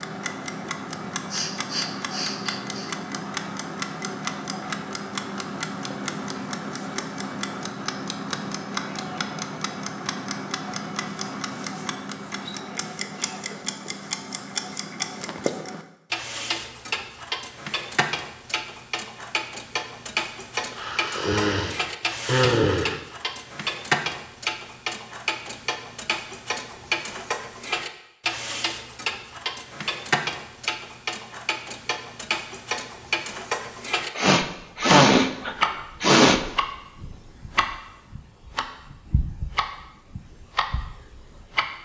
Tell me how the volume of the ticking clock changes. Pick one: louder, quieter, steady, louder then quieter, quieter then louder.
steady.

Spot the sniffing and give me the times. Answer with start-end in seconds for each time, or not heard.
1.3-3.0, 20.7-23.0, 34.1-36.4.